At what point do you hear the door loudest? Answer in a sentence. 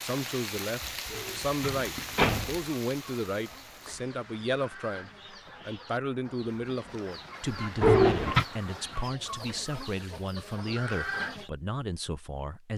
The volume of the door peaks at 8 seconds.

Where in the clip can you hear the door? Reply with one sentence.
The door can be heard from 1.1 to 2.5 s and from 7.8 to 8.4 s.